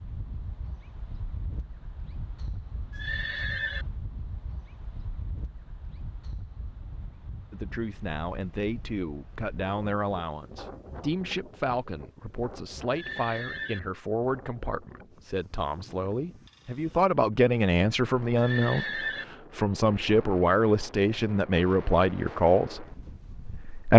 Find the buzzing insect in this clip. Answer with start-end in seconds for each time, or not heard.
not heard.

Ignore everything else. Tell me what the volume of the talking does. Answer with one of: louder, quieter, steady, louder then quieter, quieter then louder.
louder.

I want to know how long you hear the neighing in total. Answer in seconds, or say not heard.
3 s.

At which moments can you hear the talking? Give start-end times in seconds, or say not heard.
7.5-23.9.